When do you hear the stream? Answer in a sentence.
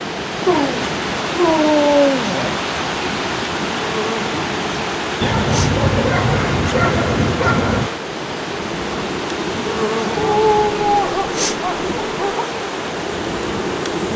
The stream can be heard from 0.0 to 14.1 s.